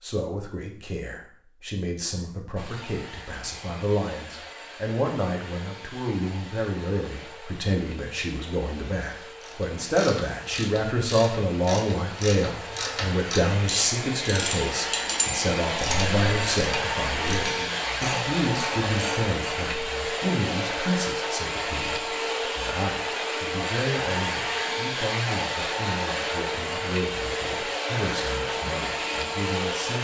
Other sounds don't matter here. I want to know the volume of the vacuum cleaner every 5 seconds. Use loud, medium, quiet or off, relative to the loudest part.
quiet, quiet, medium, loud, loud, loud.